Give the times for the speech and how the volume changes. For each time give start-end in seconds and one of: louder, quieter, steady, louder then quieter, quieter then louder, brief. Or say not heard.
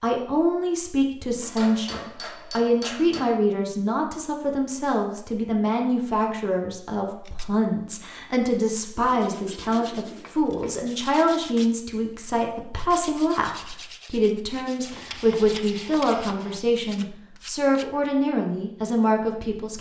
0.0-19.7 steady.